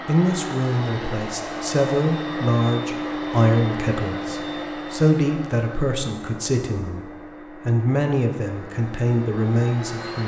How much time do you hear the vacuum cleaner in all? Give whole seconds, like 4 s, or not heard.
10 s.